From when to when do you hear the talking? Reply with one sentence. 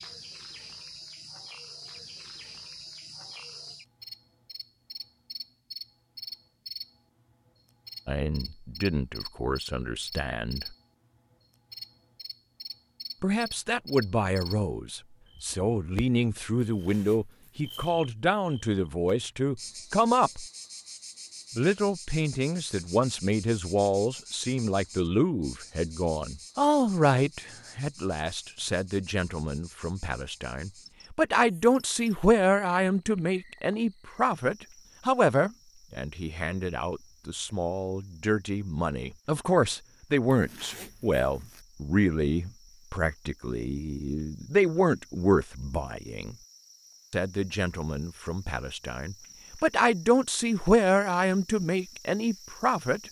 You can hear the talking from 8.1 to 10.8 s, from 13.2 to 20.4 s, from 21.6 to 46.4 s and from 47.1 to 53.0 s.